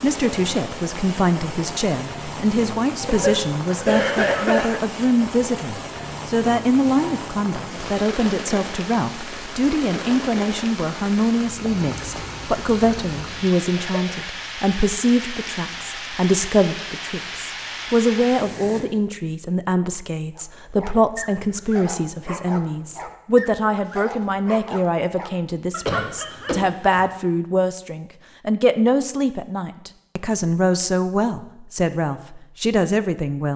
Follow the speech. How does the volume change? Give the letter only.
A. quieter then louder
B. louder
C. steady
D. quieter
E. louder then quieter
C.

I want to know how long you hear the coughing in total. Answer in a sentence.
The coughing can be heard for 3 seconds in total.